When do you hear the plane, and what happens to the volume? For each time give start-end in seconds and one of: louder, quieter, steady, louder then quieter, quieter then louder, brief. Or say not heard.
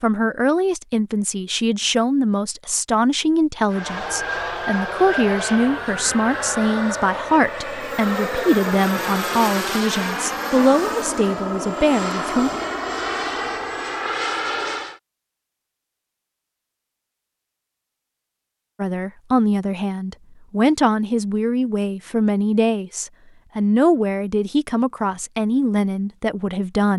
3.7-15.0 steady.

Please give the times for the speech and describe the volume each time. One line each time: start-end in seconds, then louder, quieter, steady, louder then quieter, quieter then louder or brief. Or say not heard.
0.0-12.5 steady
18.8-26.9 steady.